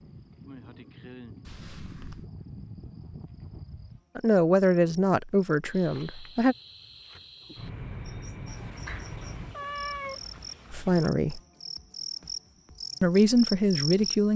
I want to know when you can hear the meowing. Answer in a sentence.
You can hear the meowing from 1.4 to 2.3 s and from 8.4 to 11.1 s.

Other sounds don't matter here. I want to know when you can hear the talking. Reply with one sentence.
You can hear the talking from 4.2 to 6.5 s, from 10.7 to 11.4 s and from 13.0 to 14.3 s.